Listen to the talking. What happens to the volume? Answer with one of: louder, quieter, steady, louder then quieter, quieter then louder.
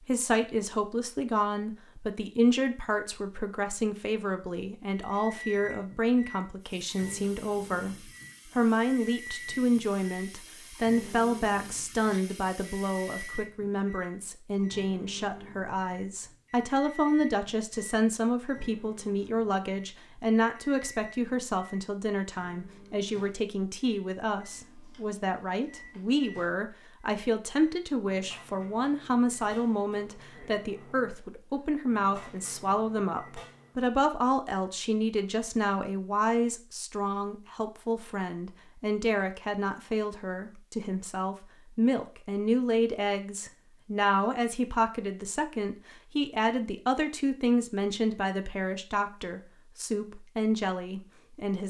steady.